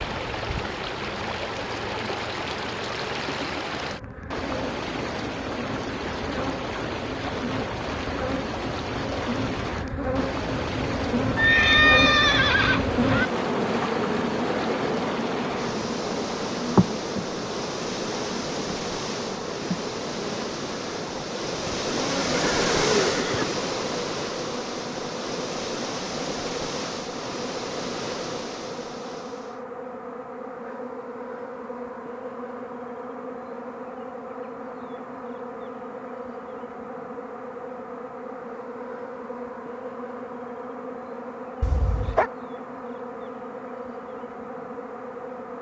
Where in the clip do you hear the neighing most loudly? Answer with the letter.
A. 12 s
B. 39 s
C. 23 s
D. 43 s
A.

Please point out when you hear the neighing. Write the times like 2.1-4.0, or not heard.
11.3-13.3, 22.3-23.4, 41.6-42.3.